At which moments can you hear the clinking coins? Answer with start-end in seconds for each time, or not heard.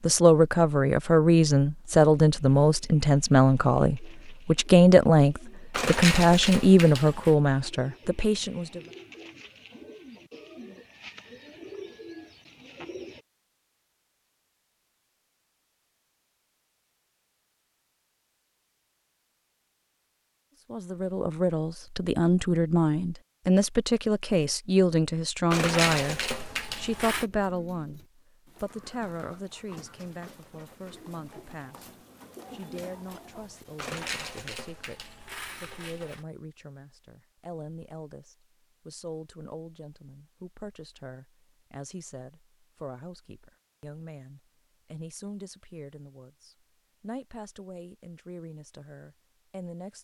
5.7-7.3, 25.5-27.2, 33.8-36.2.